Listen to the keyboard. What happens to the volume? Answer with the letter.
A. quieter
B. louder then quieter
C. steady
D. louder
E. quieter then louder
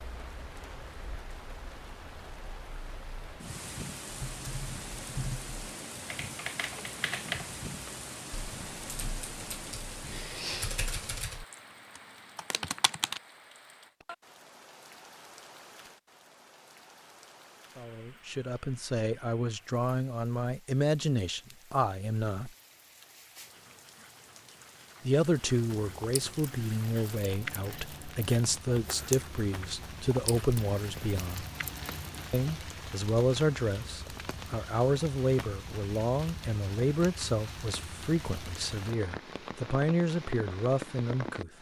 E.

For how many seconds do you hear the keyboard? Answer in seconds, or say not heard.
9 s.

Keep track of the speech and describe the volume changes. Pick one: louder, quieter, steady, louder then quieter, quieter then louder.
steady.